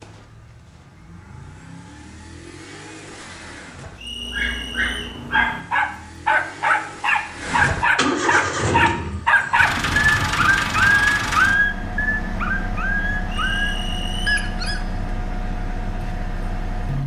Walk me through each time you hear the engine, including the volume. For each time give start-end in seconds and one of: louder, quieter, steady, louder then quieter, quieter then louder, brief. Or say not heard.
0.0-17.0 louder then quieter.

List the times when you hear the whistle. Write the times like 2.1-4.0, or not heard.
4.0-5.2, 13.2-14.5.